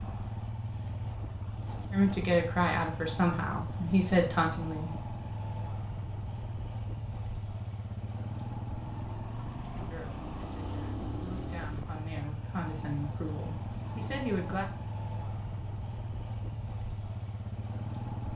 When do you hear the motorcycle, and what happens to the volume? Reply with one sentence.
The motorcycle can be heard from 0.0 to 18.3 s, at a steady volume.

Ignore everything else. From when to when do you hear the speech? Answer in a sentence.
You can hear the speech from 1.9 to 5.0 s and from 9.9 to 14.7 s.